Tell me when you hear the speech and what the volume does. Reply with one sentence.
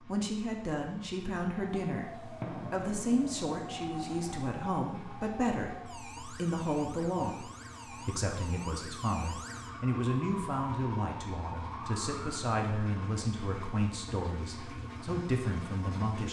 You can hear the speech from 0.1 to 16.2 s, at a steady volume.